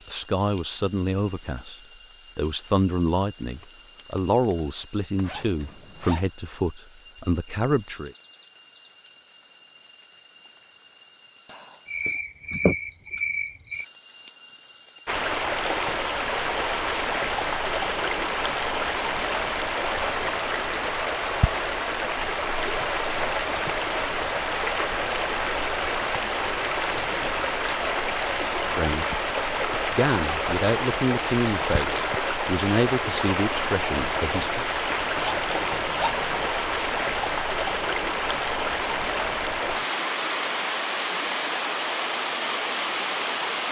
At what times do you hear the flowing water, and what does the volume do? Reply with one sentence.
The flowing water can be heard from 15.1 to 43.6 s, at a steady volume.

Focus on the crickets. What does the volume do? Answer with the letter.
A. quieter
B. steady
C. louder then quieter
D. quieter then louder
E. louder
B.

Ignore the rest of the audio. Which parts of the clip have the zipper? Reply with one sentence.
You can hear the zipper from 5.2 to 6.2 s and from 35.1 to 36.5 s.